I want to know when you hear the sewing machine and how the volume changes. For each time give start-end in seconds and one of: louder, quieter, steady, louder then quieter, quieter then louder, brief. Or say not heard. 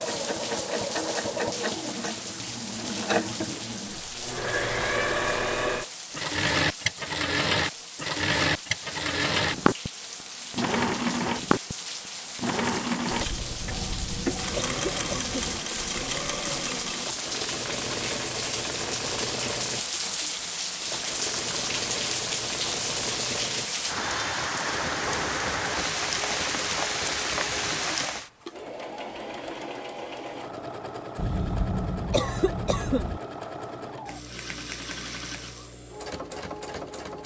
0.0-37.2 quieter.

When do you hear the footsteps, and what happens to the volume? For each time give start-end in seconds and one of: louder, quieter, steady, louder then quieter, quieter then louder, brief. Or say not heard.
not heard.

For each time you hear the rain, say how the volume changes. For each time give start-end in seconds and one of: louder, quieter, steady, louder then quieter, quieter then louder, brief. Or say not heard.
0.0-28.3 louder.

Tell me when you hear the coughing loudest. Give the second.
32 s.